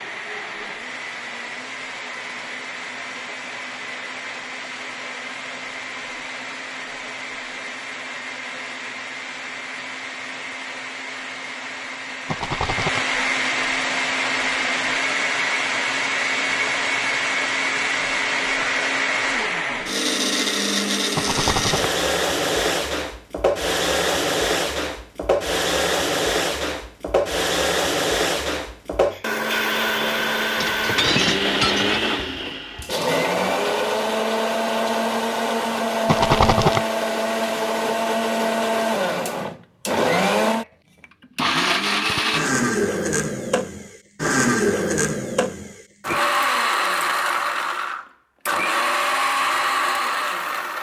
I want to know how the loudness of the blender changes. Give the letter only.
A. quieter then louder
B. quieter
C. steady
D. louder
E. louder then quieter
D.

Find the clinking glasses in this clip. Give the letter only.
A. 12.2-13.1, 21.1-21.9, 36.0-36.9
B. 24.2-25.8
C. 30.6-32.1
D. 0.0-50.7
C.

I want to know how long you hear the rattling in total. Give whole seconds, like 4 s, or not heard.
2 s.